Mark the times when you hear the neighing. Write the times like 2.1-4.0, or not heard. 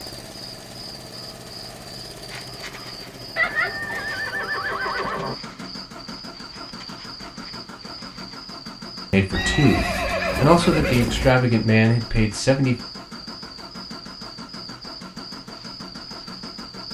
3.4-5.3, 9.3-11.3.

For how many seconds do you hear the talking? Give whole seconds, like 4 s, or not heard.
4 s.